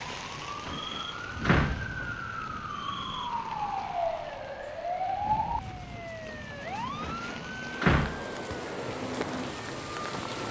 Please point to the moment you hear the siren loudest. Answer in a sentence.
The loudest moment of the siren is at 5 seconds.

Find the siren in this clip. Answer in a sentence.
The siren can be heard from 0.0 to 10.4 s.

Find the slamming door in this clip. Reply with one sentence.
You can hear the slamming door from 0.7 to 2.5 s and from 7.0 to 8.4 s.